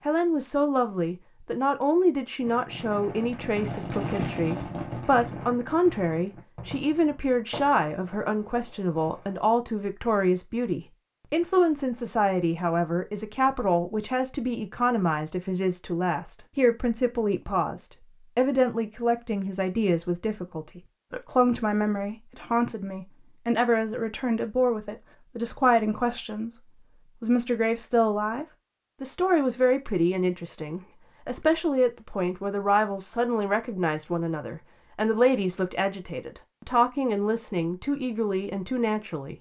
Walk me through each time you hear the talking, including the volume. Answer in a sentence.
The talking can be heard from 0.1 to 26.6 s, at a steady volume; and from 27.2 to 39.3 s, at a steady volume.